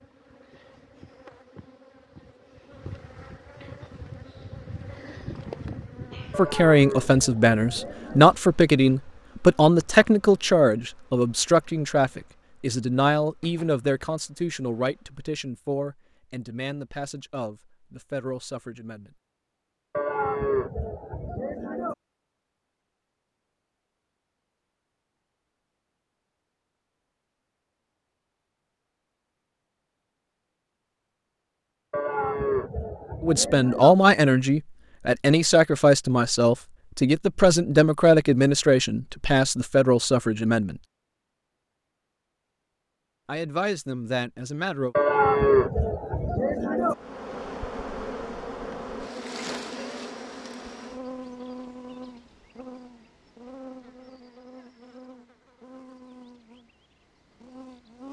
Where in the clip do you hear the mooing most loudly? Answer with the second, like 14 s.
45 s.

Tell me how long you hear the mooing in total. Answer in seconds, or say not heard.
8 s.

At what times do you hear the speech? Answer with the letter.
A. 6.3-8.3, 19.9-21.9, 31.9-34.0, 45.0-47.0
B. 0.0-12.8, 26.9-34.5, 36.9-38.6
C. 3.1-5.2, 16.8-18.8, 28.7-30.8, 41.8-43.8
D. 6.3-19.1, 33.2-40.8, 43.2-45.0
D.